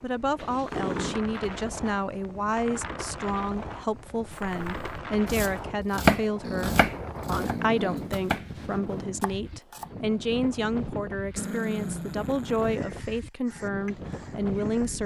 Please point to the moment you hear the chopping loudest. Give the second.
6 s.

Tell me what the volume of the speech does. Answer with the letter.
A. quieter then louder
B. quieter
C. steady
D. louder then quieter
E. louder
C.